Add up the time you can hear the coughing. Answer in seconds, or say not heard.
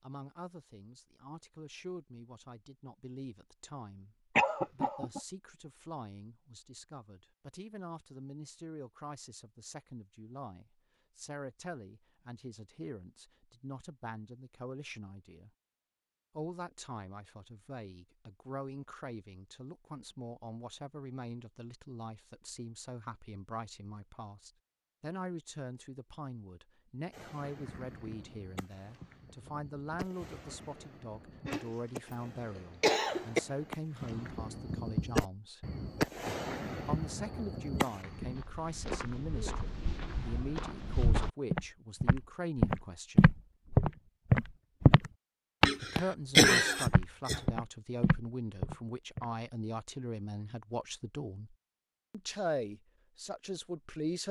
4 s.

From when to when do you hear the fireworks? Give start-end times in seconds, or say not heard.
27.1-38.5.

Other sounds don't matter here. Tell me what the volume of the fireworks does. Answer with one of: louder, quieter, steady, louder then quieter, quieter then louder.
louder.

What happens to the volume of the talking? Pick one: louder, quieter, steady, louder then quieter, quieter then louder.
louder.